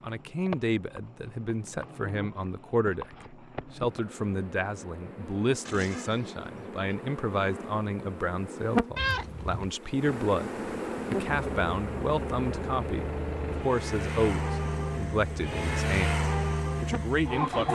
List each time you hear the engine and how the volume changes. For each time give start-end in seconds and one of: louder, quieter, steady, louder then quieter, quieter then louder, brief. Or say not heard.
9.9-17.7 louder.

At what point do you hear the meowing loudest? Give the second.
9 s.